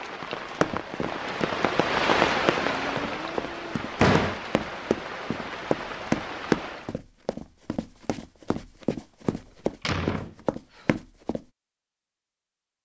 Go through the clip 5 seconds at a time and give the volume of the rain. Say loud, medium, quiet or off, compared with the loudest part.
loud, medium, off.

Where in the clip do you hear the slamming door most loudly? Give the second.
4 s.